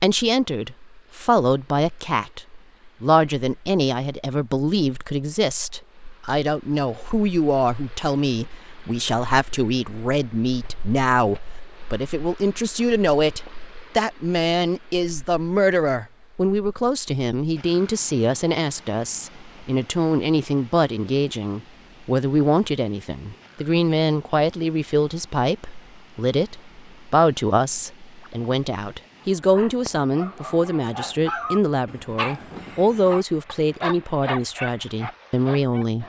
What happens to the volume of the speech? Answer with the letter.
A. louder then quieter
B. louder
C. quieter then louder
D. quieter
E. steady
E.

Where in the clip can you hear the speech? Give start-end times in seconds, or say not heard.
0.0-36.0.